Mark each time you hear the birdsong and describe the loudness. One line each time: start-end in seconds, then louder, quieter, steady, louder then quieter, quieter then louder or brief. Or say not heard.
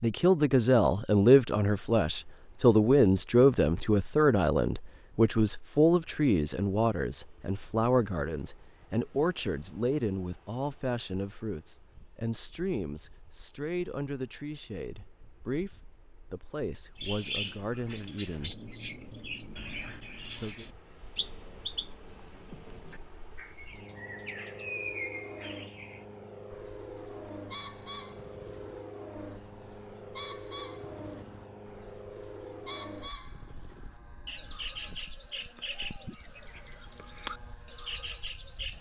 16.9-38.7 steady.